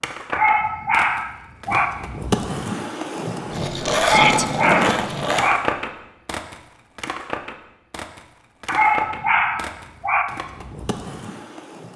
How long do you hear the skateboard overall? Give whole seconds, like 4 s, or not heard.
12 s.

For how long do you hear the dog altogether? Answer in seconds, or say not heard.
5 s.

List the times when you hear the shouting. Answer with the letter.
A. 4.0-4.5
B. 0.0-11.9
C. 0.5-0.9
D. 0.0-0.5
A.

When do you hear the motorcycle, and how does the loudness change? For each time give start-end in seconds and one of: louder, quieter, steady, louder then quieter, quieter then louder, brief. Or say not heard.
not heard.